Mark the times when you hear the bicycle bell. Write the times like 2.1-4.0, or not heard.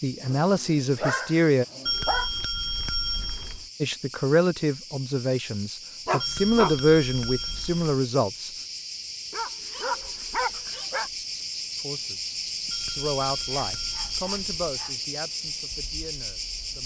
1.9-3.6, 6.2-8.0, 12.7-14.7.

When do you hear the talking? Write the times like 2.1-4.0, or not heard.
0.0-1.6, 3.8-8.5, 11.8-16.8.